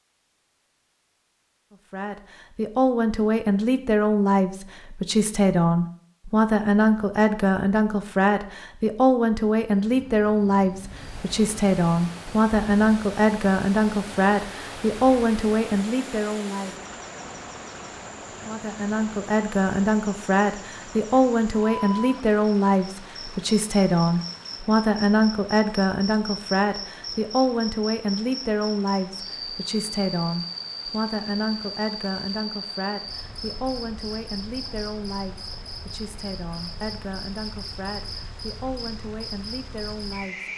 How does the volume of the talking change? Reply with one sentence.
The loudness of the talking goes down.